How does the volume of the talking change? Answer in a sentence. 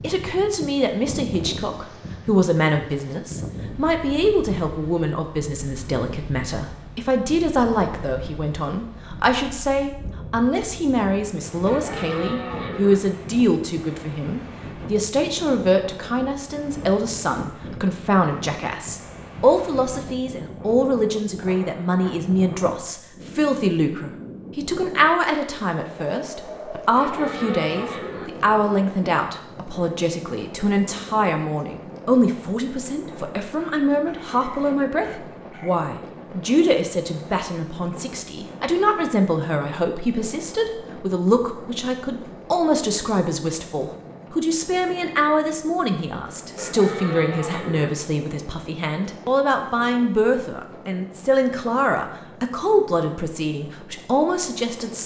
The loudness of the talking stays about the same.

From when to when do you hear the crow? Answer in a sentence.
You can't hear the crow here.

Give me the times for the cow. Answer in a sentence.
You can hear the cow from 11.7 to 13.0 s, from 26.9 to 28.3 s and from 46.5 to 47.9 s.